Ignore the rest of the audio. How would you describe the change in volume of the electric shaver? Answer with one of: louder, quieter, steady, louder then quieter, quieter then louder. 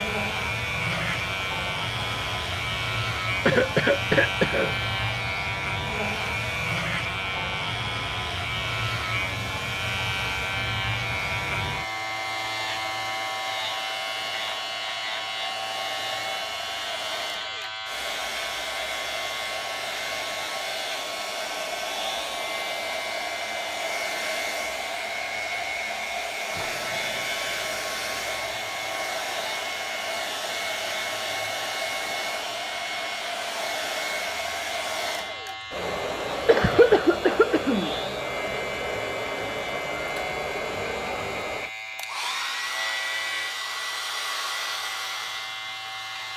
quieter.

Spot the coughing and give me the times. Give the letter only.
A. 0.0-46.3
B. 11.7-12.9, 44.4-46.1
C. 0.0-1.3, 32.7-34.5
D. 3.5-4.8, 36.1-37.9
D.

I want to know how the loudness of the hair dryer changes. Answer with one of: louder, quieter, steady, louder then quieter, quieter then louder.
louder.